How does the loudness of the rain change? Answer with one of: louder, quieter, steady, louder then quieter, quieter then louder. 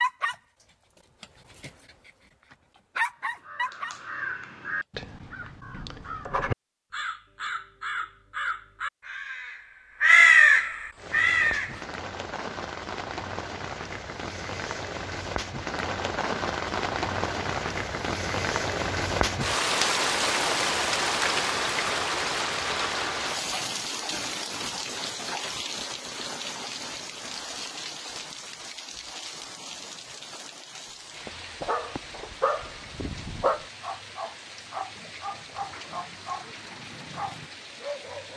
louder then quieter.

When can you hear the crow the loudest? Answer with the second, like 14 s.
10 s.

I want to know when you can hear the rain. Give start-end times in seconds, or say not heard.
10.9-38.3.